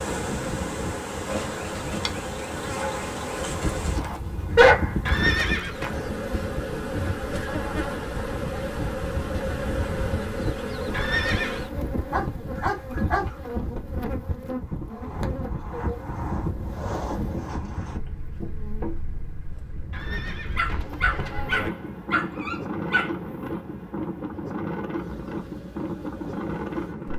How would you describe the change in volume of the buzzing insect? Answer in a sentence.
The loudness of the buzzing insect goes down.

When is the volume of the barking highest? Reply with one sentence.
The loudest moment of the barking is at 5 seconds.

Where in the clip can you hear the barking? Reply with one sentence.
The barking can be heard from 4.0 to 5.2 s, from 12.1 to 13.3 s and from 20.6 to 23.1 s.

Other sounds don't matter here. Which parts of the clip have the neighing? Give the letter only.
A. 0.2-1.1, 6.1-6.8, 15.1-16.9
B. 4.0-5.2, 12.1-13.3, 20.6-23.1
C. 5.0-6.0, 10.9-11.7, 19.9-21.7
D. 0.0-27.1
C.